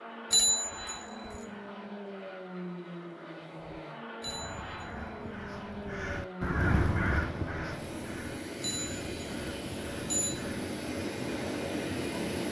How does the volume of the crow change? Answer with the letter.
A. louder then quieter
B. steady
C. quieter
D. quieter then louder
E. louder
A.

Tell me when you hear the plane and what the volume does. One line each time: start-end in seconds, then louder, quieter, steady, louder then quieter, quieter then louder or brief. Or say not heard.
0.0-12.4 louder.